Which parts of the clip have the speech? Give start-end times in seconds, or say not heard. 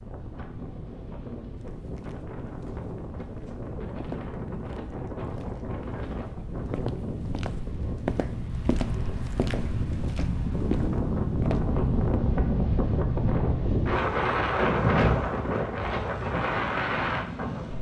not heard.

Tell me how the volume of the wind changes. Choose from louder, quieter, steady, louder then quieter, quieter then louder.
louder.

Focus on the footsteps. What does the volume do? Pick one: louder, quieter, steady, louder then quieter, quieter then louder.
louder.